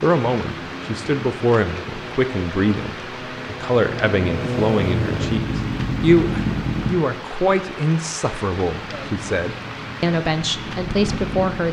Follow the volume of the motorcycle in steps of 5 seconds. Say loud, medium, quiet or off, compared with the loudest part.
loud, loud, medium.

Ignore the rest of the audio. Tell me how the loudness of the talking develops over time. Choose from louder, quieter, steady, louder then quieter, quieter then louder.
steady.